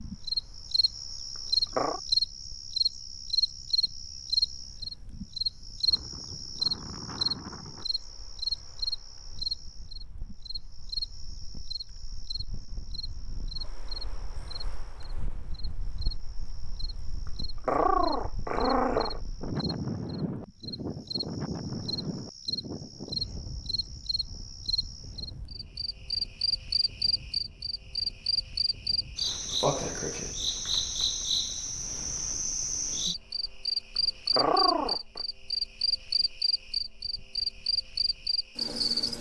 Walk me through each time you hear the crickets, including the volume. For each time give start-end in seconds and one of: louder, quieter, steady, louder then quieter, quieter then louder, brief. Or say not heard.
0.0-39.1 quieter then louder.